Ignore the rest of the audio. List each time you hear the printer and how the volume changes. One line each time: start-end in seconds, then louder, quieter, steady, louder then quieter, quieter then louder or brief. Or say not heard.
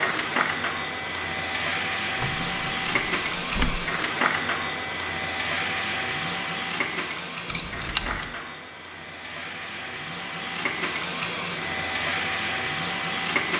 0.0-13.5 quieter then louder.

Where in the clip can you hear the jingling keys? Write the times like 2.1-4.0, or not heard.
2.1-3.9, 7.5-8.3.